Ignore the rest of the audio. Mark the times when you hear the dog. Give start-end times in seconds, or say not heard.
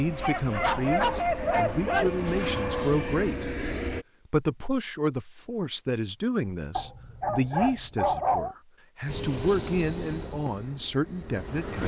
0.2-2.1, 6.8-8.6.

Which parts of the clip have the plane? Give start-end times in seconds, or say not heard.
0.0-4.0, 9.1-11.8.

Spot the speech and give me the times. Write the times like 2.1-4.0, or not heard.
0.0-3.5, 4.3-11.8.